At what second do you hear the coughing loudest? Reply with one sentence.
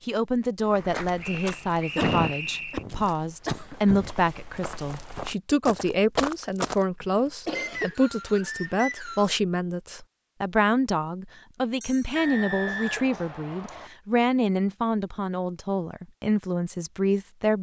The volume of the coughing peaks at 2 seconds.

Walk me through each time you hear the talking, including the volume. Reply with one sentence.
You can hear the talking from 0.1 to 17.5 s, at a steady volume.